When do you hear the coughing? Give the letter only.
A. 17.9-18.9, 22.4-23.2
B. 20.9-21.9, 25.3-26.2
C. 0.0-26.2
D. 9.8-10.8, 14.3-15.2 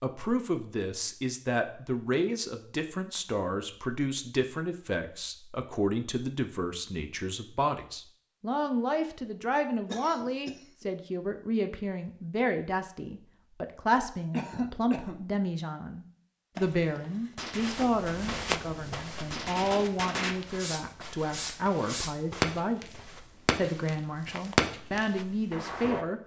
D.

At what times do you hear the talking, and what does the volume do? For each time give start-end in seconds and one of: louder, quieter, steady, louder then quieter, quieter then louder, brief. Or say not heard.
0.0-26.2 steady.